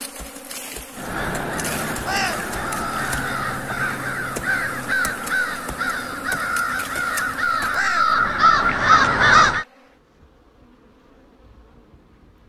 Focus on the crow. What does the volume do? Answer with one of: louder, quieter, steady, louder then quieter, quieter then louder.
louder.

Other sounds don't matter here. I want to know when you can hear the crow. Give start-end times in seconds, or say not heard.
0.9-9.7.